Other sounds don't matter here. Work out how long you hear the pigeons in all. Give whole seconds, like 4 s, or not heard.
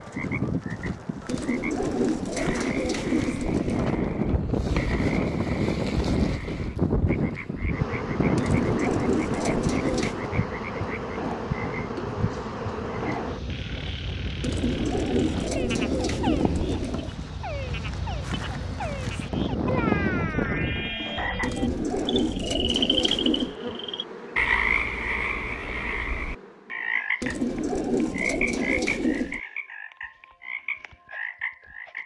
12 s.